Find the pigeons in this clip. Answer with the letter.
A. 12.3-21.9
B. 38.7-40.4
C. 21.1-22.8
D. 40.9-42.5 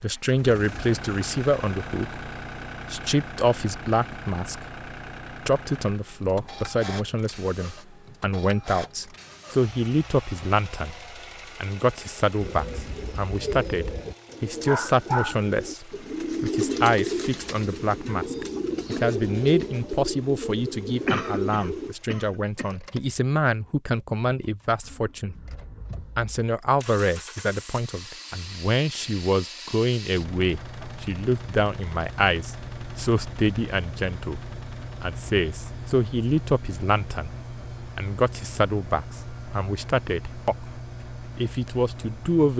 A.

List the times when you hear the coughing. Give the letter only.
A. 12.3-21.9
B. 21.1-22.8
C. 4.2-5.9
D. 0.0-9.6
B.